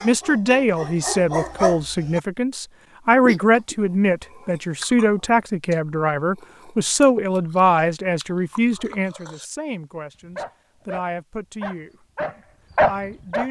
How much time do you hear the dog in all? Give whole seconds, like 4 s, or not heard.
5 s.